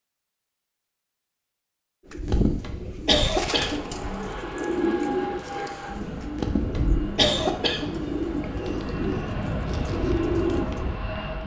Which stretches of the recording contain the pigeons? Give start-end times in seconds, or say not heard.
2.0-10.9.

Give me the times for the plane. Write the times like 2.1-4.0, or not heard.
3.5-11.4.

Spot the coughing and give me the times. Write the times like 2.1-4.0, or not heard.
2.2-3.8, 6.3-7.9.